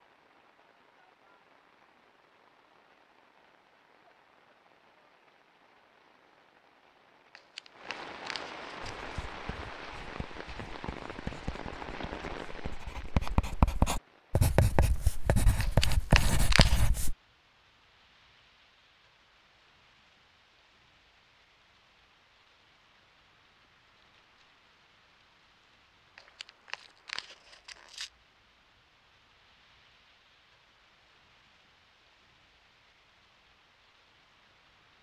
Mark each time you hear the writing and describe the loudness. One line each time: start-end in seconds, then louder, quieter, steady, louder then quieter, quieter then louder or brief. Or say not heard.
8.8-17.1 louder.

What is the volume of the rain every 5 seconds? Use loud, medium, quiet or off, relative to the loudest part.
quiet, loud, loud, quiet, quiet, quiet, quiet.